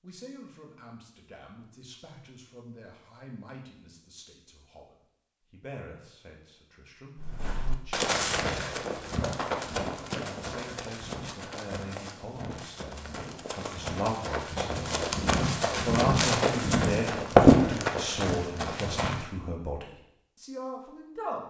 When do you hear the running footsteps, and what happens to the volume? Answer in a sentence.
The running footsteps can be heard from 7.2 to 19.2 s, getting quieter then louder.